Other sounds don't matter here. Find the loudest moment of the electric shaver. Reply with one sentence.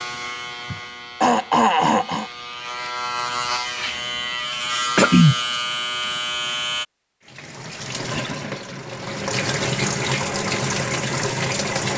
The loudest moment of the electric shaver is at 5 seconds.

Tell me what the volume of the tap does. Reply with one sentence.
The volume of the tap goes up.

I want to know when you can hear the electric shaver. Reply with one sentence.
You can hear the electric shaver from 0.0 to 6.8 s.